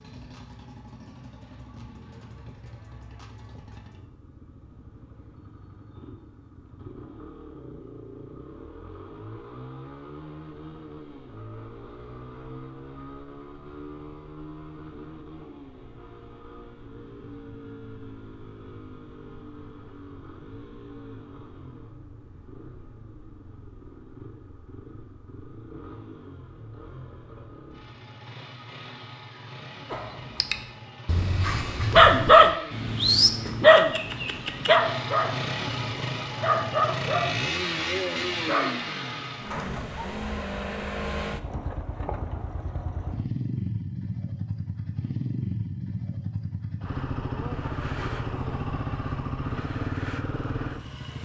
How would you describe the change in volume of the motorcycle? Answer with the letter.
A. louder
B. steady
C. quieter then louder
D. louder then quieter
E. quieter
A.